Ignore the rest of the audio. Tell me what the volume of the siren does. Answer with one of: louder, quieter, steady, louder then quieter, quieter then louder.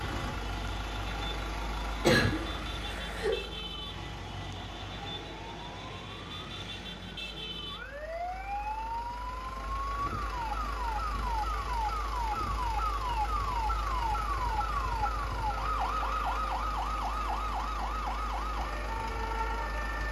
louder.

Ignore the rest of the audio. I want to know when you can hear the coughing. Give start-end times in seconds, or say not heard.
2.0-3.4.